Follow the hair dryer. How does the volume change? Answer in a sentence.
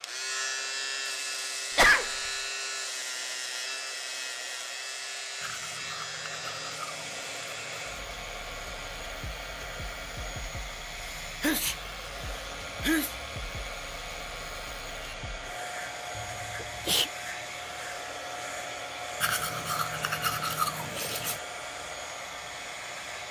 The loudness of the hair dryer goes up.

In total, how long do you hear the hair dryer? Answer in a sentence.
The hair dryer can be heard for 23 seconds in total.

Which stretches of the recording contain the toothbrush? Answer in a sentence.
You can hear the toothbrush from 5.4 to 8.1 s and from 19.2 to 21.4 s.